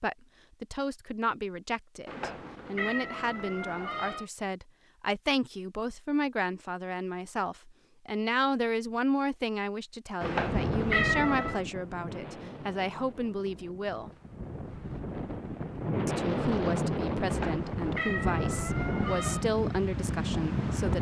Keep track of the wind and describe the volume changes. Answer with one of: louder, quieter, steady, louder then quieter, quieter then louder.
quieter then louder.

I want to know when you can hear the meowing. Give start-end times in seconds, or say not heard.
2.0-4.2, 10.2-11.6, 17.2-19.4.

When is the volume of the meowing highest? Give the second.
11 s.